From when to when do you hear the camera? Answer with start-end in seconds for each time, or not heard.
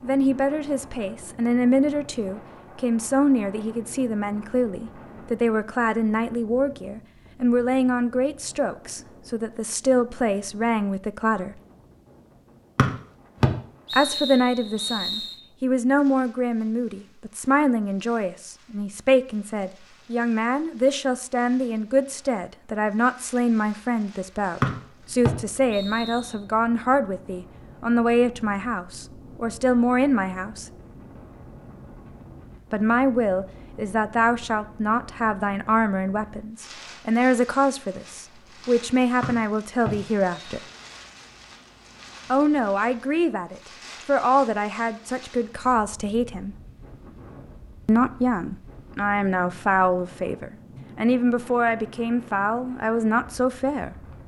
not heard.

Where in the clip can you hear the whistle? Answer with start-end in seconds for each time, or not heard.
12.8-15.3, 24.6-26.4, 39.2-40.6.